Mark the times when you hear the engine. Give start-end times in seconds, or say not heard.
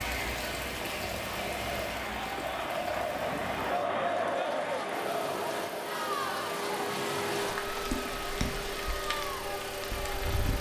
5.2-10.5.